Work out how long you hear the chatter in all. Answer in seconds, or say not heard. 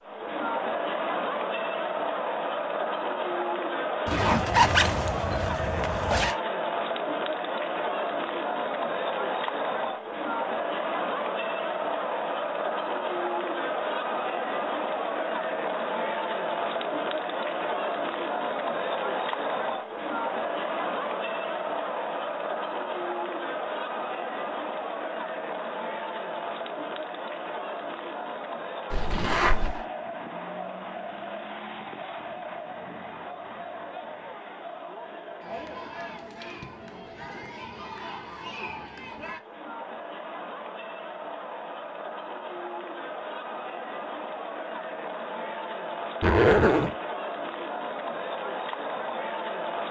50 s.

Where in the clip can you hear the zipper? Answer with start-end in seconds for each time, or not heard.
4.0-6.3, 28.9-29.8, 46.2-47.0.